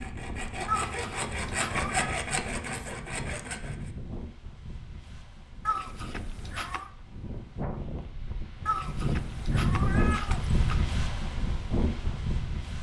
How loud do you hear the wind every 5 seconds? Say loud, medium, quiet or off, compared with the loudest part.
medium, loud, loud.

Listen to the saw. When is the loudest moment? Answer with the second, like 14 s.
2 s.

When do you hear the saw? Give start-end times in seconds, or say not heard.
0.0-3.9.